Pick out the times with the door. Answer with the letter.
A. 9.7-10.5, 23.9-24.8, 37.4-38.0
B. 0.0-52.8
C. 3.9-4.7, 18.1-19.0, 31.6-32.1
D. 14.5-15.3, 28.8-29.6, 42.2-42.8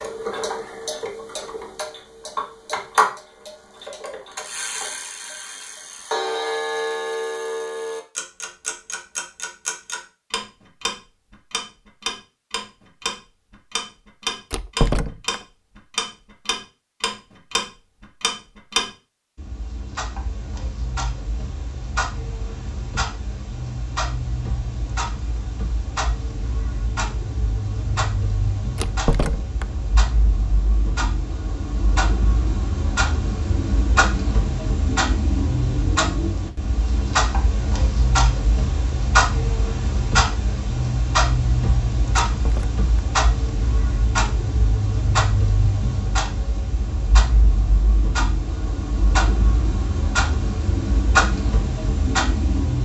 D.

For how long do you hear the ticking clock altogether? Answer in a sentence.
You can hear the ticking clock for 53 seconds altogether.